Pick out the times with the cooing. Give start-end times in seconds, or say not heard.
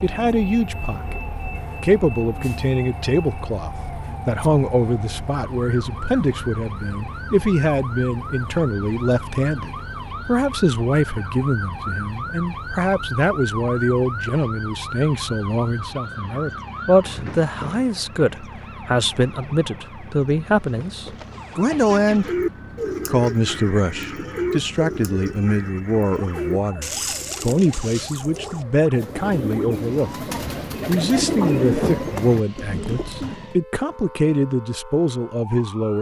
22.1-33.5.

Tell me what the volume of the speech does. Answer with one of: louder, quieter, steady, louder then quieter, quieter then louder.
steady.